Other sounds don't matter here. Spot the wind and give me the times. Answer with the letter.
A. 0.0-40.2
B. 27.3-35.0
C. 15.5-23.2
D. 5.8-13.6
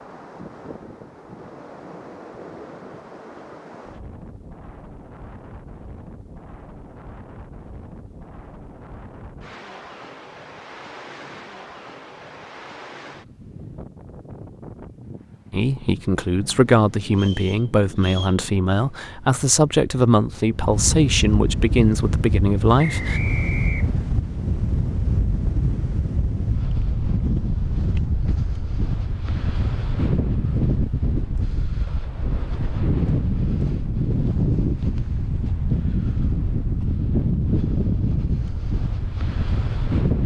A.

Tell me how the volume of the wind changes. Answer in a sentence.
The volume of the wind goes up.